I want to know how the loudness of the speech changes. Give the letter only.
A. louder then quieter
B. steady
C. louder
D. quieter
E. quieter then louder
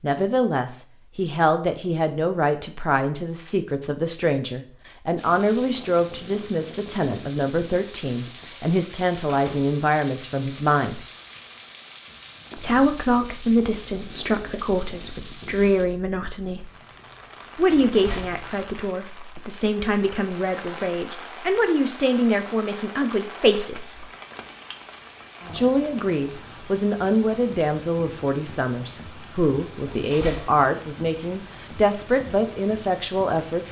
B.